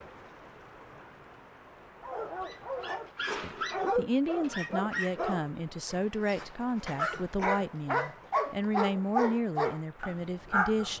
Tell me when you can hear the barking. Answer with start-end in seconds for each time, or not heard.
2.0-10.9.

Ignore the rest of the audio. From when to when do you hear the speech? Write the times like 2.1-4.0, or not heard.
3.3-10.9.